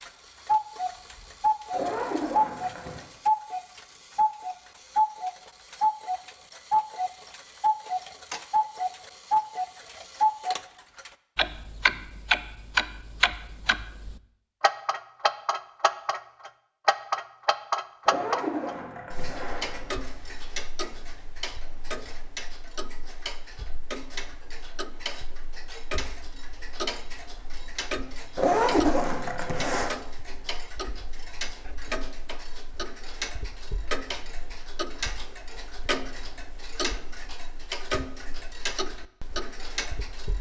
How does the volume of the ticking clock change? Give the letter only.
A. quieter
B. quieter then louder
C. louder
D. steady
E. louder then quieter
A.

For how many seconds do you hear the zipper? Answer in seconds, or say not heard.
5 s.